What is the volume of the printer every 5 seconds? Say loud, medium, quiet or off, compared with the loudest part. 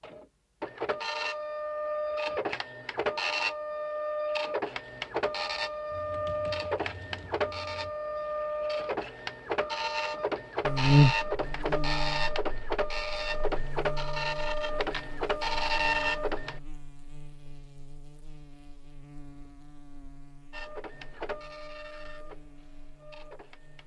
loud, loud, loud, loud, quiet.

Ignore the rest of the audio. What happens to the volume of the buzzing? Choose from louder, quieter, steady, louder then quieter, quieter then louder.
quieter.